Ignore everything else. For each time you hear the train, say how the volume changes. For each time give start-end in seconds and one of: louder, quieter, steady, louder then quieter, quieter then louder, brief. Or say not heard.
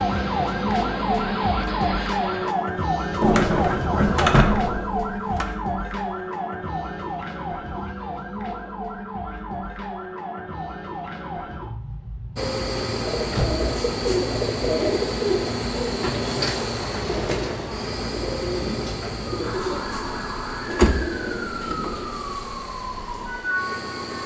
0.0-2.5 brief
12.3-24.2 quieter.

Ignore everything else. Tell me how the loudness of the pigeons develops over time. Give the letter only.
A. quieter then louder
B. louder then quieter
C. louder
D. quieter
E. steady
D.